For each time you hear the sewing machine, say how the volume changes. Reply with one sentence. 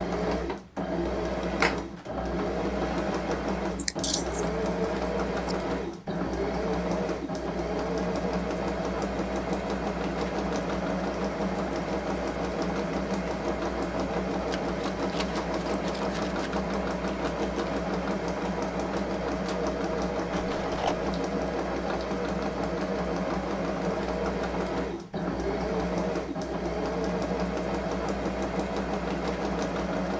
The sewing machine can be heard from 0.0 to 30.1 s, at a steady volume.